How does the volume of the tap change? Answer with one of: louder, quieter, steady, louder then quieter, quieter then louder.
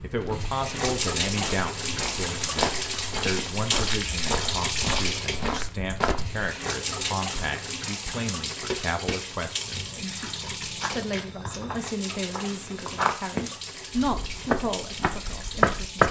quieter.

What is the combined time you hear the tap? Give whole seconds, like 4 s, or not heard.
16 s.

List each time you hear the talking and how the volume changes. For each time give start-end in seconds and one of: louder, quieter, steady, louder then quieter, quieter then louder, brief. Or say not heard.
0.0-16.0 steady.